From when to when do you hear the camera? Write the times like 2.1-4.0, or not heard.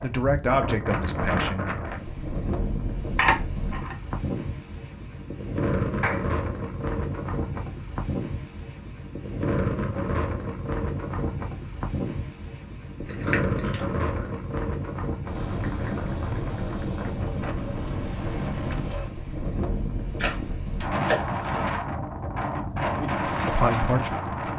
3.1-4.0, 13.0-14.1, 20.1-21.8.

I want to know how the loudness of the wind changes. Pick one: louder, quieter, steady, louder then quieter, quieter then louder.
steady.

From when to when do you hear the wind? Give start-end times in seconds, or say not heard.
0.0-24.5.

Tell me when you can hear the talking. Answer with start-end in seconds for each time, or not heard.
0.0-1.8, 22.9-24.4.